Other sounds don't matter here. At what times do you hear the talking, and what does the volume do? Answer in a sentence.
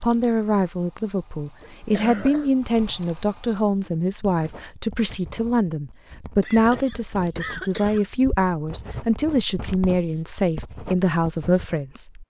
The talking can be heard from 0.0 to 12.2 s, at a steady volume.